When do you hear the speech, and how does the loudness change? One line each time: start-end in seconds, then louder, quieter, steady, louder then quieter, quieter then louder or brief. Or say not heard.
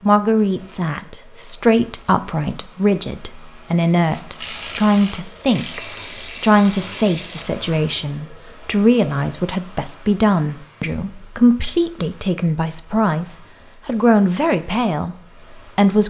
0.0-16.0 steady.